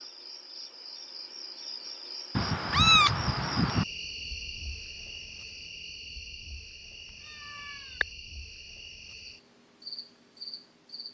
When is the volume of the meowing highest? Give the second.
3 s.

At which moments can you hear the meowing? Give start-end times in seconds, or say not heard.
2.4-3.9, 7.4-8.1.